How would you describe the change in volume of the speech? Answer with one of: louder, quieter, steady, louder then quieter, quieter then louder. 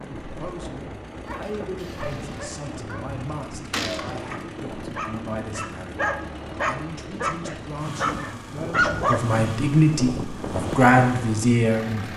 louder.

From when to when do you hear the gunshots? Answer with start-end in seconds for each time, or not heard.
3.7-4.2.